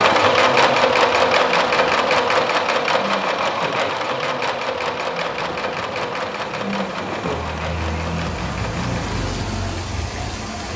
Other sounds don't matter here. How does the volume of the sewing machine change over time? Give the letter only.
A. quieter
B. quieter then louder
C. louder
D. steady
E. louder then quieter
A.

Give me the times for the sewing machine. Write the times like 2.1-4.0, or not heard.
0.0-9.2.